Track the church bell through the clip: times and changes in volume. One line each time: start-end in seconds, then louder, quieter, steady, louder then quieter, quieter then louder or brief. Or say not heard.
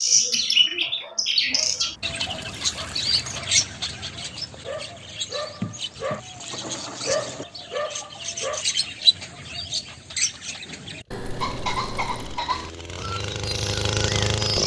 not heard.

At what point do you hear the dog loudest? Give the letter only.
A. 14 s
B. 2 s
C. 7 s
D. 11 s
C.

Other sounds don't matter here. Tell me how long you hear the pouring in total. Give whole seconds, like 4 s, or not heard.
5 s.